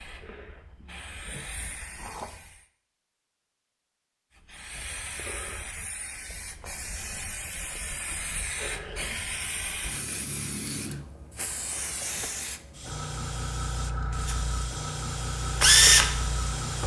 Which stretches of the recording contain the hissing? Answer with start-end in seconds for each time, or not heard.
0.0-2.6, 4.3-16.8.